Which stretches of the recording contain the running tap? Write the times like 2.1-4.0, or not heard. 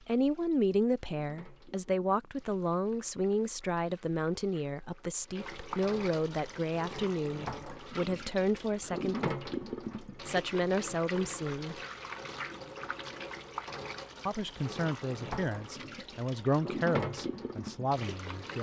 0.0-18.5.